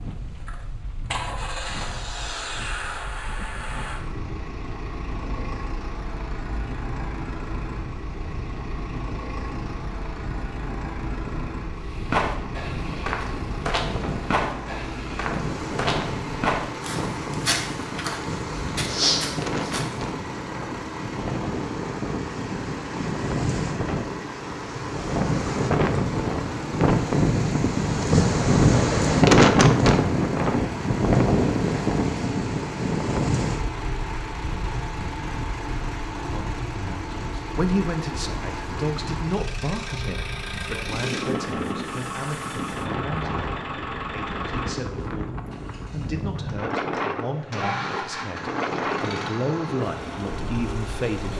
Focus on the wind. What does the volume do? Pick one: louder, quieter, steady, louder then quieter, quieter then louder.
louder then quieter.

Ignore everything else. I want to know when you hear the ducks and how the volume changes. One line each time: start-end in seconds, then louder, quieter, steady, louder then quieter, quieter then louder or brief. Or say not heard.
not heard.